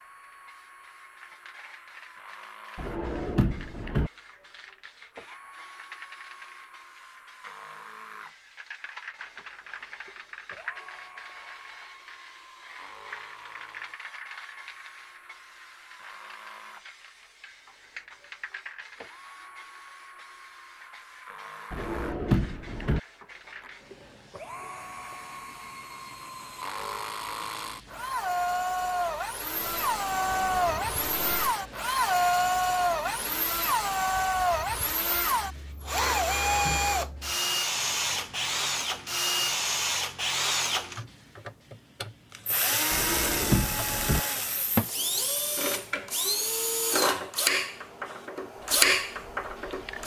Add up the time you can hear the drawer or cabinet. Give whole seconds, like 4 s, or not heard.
4 s.